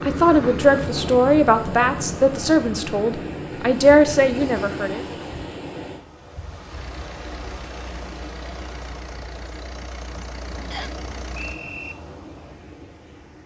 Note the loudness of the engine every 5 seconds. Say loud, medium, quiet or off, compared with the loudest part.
off, loud, loud.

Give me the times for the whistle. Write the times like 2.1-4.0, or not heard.
10.7-11.9.